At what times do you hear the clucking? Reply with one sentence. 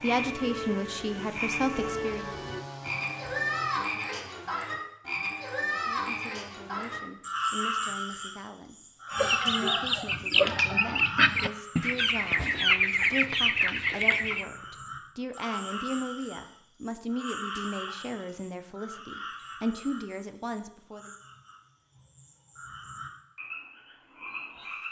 You can hear the clucking from 9.1 to 14.4 s.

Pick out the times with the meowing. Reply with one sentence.
You can't hear the meowing here.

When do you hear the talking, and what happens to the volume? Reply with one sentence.
You can hear the talking briefly from 0.0 to 2.4 s; and from 5.7 to 21.1 s, getting louder.